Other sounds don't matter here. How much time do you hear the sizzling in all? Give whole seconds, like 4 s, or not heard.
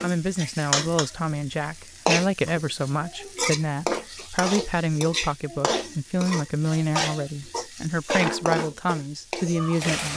10 s.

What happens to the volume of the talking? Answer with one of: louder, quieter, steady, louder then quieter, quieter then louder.
steady.